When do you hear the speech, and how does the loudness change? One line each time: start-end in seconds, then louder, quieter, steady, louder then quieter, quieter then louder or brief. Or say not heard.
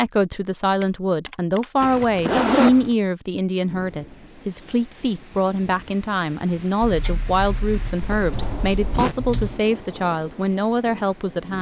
0.0-11.5 steady.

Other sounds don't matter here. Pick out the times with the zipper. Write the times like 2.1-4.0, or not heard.
1.8-2.9, 8.0-9.2.